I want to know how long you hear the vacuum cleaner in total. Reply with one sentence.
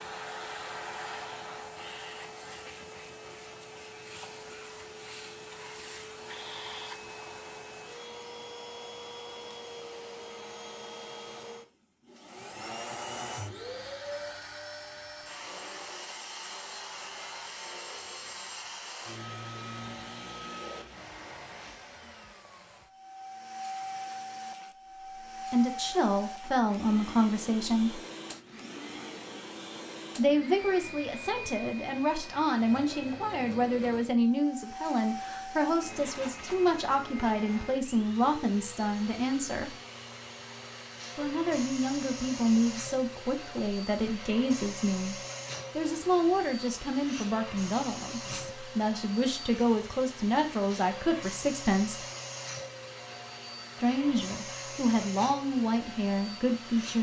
You can hear the vacuum cleaner for 57 seconds altogether.